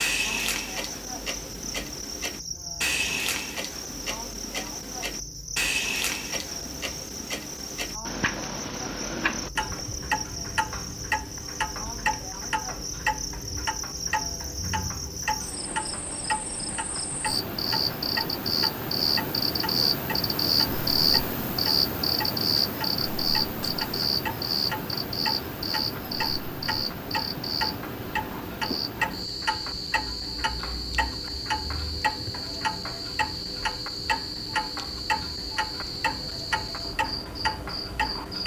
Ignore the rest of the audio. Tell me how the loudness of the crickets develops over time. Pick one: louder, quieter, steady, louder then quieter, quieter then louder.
louder then quieter.